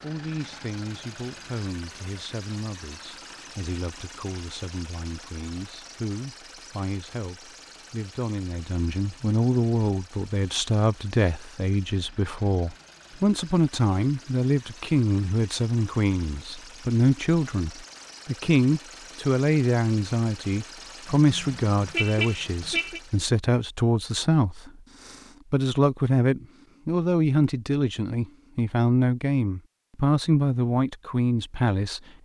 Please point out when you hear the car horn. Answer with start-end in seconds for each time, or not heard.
21.2-23.0.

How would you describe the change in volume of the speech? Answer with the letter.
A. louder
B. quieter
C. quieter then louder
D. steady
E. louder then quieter
A.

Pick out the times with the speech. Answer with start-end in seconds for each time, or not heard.
0.0-32.0.